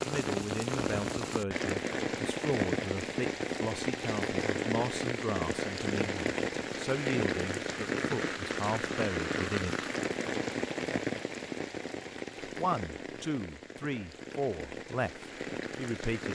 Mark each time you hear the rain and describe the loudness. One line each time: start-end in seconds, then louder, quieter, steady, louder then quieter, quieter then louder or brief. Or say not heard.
0.0-16.3 quieter.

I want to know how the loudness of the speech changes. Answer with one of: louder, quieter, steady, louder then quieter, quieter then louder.
steady.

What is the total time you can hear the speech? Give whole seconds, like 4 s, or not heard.
14 s.